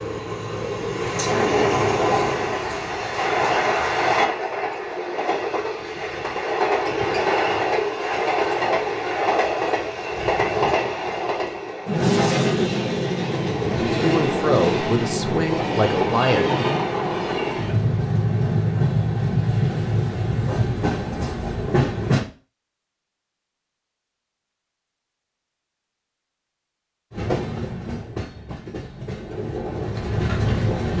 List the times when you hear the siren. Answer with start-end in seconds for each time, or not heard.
not heard.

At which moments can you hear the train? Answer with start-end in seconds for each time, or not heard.
0.0-22.2, 27.1-30.9.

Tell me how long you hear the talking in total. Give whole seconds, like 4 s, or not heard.
3 s.